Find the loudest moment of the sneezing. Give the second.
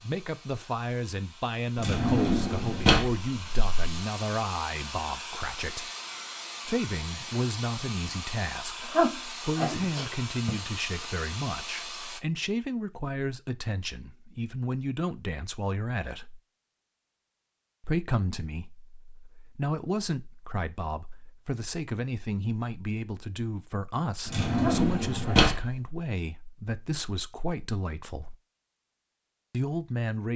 9 s.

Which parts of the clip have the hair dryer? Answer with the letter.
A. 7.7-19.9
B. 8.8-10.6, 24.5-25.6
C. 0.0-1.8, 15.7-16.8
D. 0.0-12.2
D.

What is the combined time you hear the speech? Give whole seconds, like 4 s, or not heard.
27 s.